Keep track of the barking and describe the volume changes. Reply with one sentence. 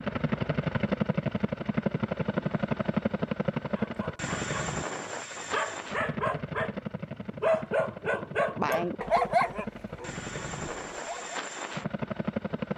The loudness of the barking goes up, then down.